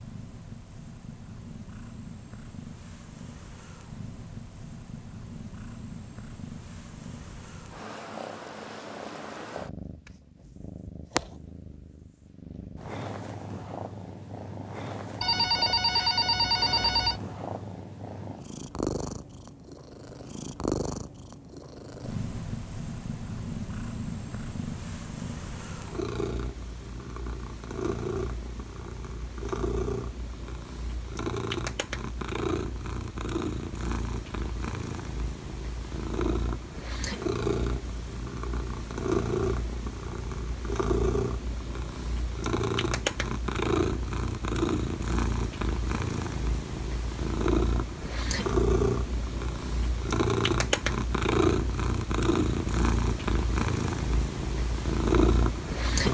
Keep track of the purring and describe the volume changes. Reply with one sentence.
The loudness of the purring goes up.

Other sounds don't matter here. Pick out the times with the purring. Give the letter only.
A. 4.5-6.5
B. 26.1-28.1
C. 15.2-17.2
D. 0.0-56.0
D.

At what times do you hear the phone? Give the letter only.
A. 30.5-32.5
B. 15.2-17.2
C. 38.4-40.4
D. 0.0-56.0
B.